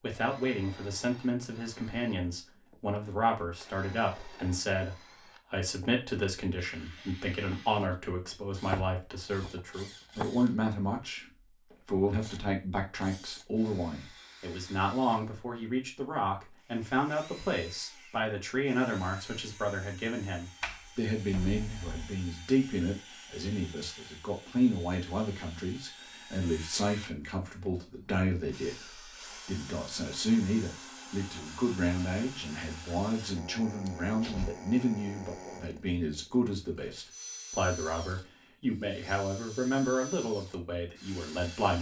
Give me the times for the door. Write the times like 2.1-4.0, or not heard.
8.7-10.2, 20.6-22.1, 33.9-34.5.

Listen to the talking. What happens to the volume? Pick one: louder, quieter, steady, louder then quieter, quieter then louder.
steady.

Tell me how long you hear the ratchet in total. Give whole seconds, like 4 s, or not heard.
not heard.